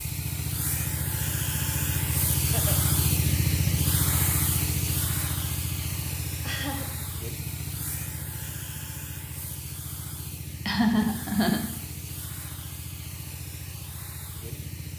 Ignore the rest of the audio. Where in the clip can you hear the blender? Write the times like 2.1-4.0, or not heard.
not heard.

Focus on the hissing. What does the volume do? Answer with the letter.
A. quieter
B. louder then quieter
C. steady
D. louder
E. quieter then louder
A.